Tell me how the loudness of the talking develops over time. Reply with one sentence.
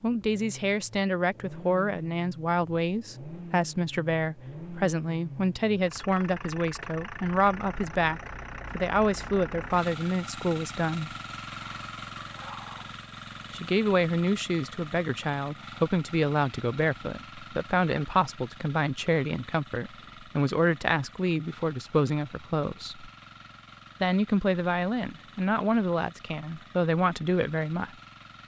The volume of the talking stays about the same.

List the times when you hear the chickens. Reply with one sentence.
The chickens can be heard from 11.4 to 12.9 s.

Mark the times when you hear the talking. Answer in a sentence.
The talking can be heard from 0.0 to 11.1 s, from 13.5 to 23.1 s and from 24.0 to 27.9 s.